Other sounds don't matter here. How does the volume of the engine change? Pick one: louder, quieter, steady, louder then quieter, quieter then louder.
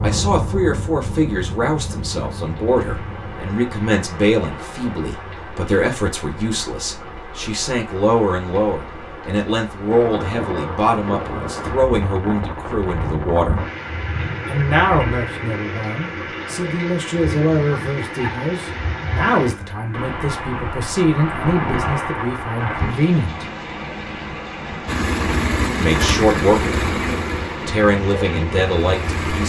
quieter.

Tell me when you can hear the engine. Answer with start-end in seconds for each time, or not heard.
24.9-29.4.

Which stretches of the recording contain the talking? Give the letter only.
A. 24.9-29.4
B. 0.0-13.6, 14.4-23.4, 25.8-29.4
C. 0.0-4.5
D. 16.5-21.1
B.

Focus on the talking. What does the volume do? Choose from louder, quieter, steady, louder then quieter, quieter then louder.
steady.